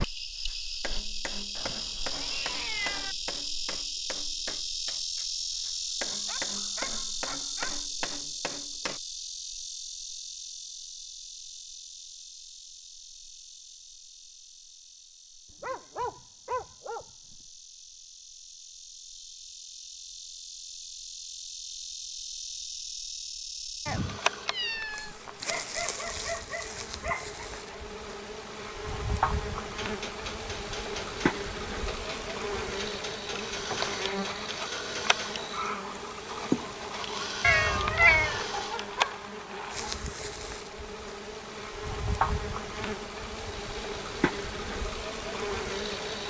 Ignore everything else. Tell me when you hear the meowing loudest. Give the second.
38 s.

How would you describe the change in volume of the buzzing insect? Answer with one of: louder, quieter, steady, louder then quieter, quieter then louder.
quieter then louder.